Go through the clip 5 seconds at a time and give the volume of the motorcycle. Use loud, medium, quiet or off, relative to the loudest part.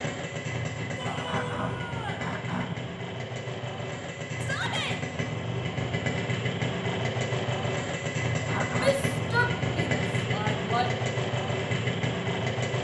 medium, loud, loud.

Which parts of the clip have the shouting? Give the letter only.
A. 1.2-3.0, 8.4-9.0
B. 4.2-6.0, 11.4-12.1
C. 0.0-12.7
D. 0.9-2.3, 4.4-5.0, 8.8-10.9
D.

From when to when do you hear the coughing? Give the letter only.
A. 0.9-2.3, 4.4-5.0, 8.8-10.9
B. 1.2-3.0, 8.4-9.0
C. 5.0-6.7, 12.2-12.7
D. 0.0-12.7
B.